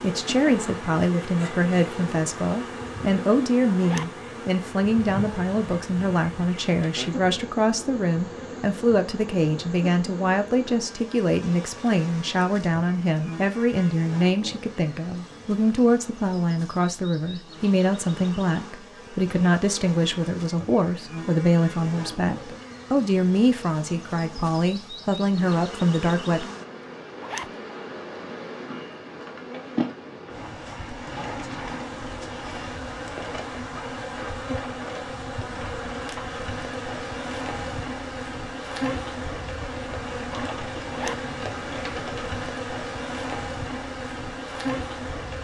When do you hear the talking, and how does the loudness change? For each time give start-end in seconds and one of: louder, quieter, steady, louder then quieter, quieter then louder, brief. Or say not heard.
0.0-26.4 steady.